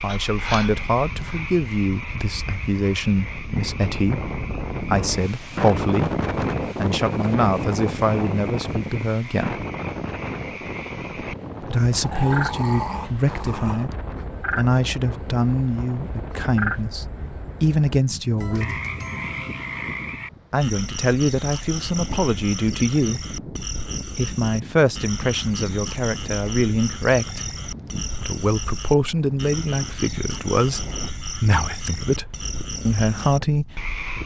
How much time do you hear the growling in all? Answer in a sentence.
You can hear the growling for 2 seconds altogether.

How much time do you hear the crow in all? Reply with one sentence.
You can't hear the crow here.